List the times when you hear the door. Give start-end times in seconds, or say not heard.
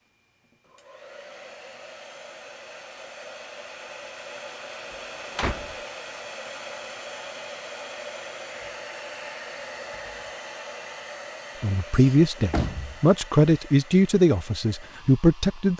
4.9-5.8, 11.9-12.9.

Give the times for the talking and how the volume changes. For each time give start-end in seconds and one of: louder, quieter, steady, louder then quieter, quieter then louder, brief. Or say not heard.
11.6-15.7 steady.